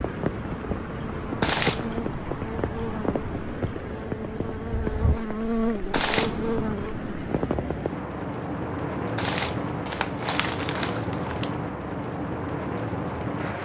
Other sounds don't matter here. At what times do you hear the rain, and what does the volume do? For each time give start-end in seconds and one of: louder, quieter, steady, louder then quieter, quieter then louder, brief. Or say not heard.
0.0-13.6 steady.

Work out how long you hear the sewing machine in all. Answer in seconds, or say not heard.
not heard.